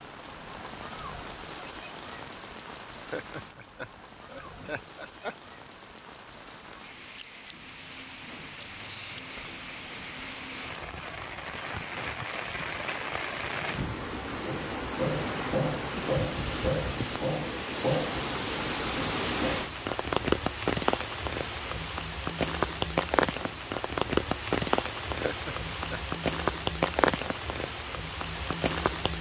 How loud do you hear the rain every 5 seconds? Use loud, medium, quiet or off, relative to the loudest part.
quiet, quiet, medium, loud, loud, loud.